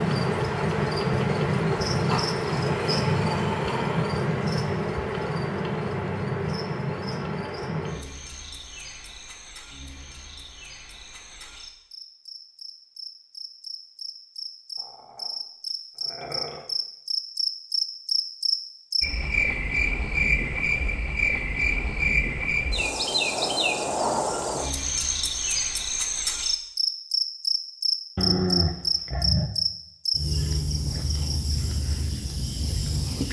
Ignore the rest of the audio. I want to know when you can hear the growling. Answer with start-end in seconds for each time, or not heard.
2.0-4.0, 14.8-16.6, 28.1-29.5.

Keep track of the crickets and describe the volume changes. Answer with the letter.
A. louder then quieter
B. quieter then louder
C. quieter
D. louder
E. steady
B.